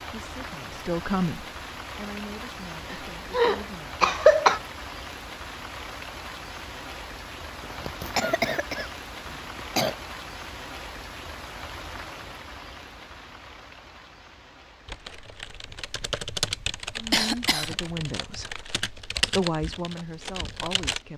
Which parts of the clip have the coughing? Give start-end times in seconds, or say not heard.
2.9-4.6, 7.6-9.9, 17.1-17.8.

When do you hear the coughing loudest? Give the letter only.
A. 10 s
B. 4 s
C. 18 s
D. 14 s
B.